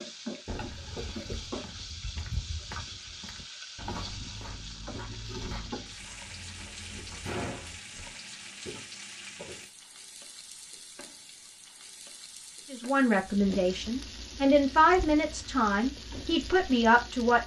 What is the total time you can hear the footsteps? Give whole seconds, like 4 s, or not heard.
9 s.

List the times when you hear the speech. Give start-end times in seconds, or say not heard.
12.7-17.4.